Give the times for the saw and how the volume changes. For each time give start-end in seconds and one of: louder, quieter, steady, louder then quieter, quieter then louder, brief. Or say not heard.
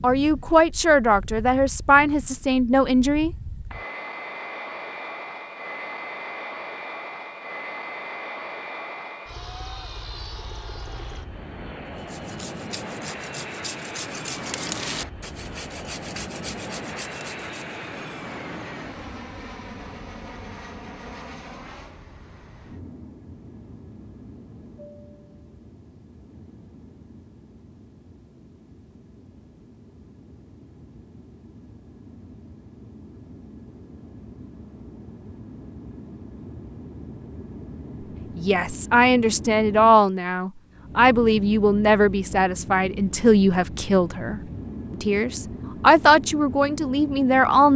11.9-17.8 louder then quieter.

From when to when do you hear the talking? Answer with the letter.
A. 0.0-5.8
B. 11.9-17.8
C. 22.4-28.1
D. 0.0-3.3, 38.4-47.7
D.